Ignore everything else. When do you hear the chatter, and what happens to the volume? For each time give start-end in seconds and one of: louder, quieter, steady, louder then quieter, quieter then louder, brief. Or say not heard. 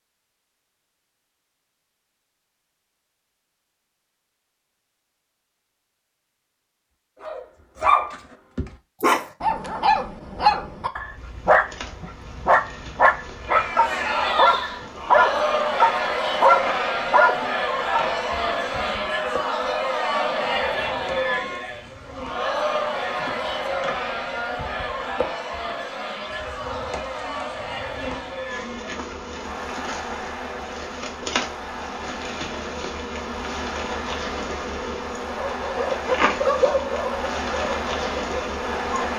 13.4-39.1 quieter.